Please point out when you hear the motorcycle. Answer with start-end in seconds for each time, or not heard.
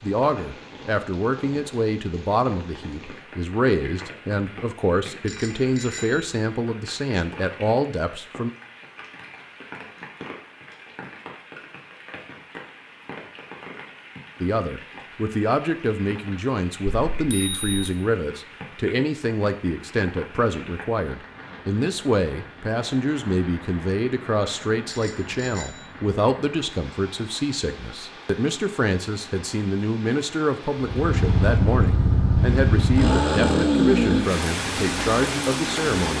30.8-35.9.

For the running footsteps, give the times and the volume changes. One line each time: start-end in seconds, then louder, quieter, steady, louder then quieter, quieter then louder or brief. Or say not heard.
not heard.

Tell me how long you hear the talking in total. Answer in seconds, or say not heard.
30 s.